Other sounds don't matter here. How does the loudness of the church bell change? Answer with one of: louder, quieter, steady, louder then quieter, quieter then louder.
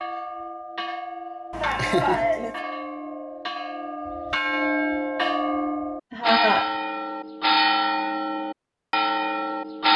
louder.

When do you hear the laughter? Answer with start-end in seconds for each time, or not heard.
1.5-2.5, 6.1-6.7.